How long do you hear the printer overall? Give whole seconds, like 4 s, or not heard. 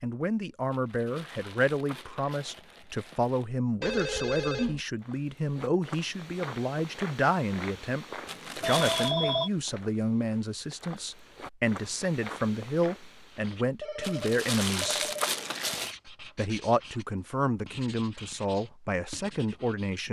not heard.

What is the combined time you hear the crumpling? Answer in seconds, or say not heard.
6 s.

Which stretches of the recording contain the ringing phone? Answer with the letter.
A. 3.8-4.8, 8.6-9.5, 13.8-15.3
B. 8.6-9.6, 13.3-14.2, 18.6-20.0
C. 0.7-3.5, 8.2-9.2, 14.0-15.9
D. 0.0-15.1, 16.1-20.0
A.